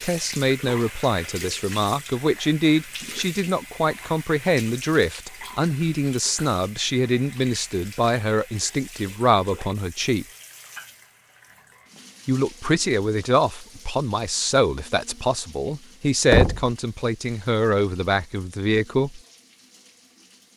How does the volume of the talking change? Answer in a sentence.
The loudness of the talking stays about the same.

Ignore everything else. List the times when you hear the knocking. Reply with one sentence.
The knocking can be heard from 16.3 to 16.8 s.